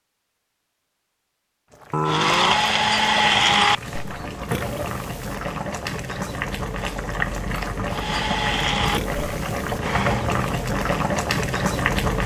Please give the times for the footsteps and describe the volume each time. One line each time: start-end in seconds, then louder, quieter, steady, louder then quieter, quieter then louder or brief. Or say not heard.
not heard.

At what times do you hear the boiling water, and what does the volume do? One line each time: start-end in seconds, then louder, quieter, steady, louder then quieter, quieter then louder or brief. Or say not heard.
1.7-12.2 louder.